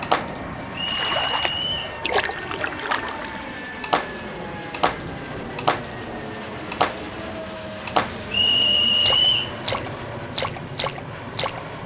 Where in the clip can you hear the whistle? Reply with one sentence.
The whistle can be heard from 0.7 to 1.9 s and from 8.3 to 9.6 s.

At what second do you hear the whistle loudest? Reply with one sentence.
The volume of the whistle peaks at 9 seconds.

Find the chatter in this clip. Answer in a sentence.
The chatter can't be heard in this clip.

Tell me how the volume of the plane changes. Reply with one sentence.
The loudness of the plane stays about the same.